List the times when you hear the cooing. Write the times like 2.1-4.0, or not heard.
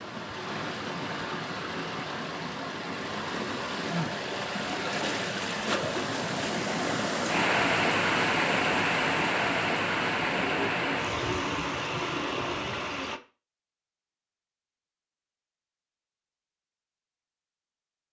10.2-12.8.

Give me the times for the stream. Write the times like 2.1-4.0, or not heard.
0.0-13.2.